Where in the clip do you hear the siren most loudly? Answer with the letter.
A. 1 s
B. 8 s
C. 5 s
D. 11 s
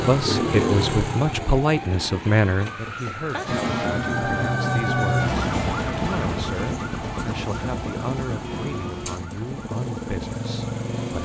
C.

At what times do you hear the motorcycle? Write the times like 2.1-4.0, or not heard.
0.0-11.2.